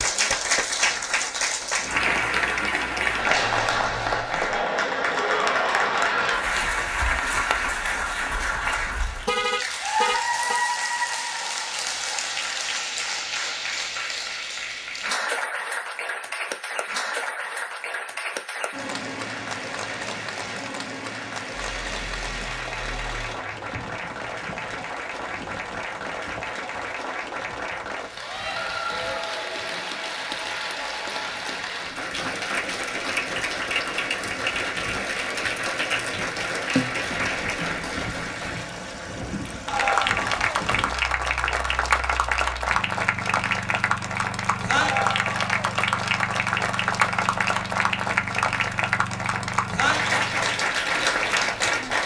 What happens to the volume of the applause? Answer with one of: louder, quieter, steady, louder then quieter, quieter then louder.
quieter then louder.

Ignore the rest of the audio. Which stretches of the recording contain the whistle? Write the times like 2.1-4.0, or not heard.
not heard.